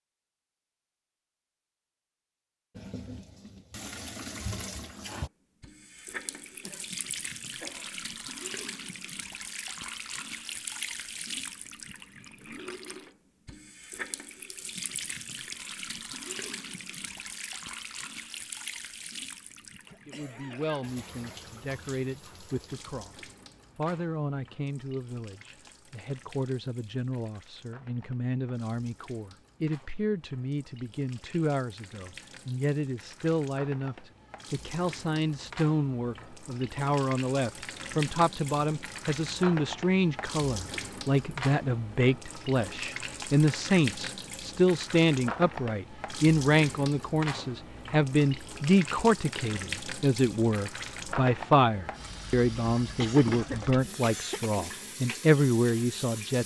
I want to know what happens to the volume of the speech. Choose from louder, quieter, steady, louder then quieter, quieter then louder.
louder.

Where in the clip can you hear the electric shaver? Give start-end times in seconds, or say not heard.
not heard.